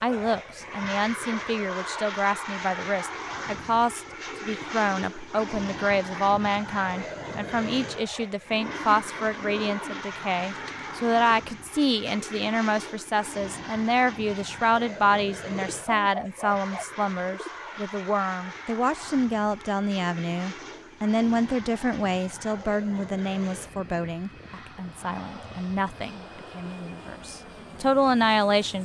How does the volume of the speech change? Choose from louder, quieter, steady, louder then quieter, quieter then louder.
steady.